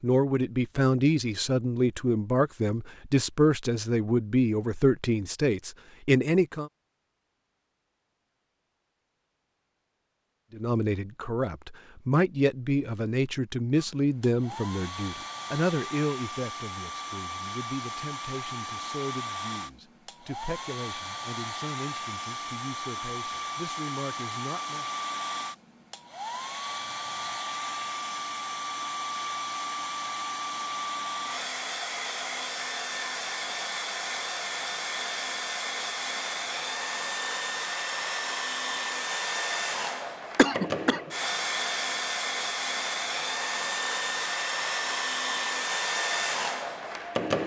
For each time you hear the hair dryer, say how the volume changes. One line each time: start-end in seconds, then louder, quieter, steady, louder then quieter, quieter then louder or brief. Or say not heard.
13.8-47.4 louder.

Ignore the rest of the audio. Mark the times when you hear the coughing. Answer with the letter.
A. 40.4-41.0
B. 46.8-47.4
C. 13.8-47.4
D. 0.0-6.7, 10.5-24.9
A.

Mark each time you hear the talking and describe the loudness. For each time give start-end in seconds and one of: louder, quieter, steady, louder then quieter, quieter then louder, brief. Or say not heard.
0.0-6.7 steady
10.5-24.9 quieter.